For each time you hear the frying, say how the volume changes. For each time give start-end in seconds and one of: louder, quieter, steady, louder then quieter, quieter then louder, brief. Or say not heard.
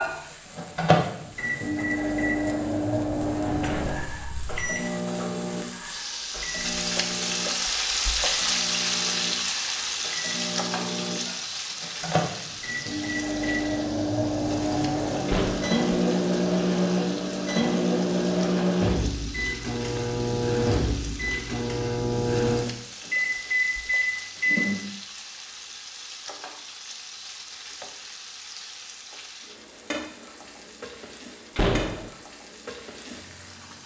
0.0-33.8 louder then quieter.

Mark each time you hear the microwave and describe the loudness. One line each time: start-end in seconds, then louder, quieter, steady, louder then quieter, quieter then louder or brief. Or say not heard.
0.0-24.8 quieter then louder.